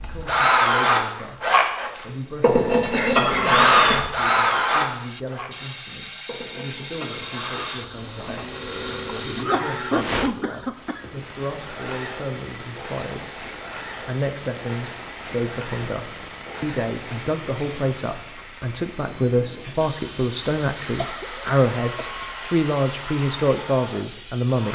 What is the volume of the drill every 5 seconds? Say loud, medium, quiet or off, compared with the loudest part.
loud, quiet, quiet, quiet, quiet.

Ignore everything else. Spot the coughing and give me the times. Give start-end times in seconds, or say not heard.
2.9-4.1, 8.5-11.0, 20.9-22.1.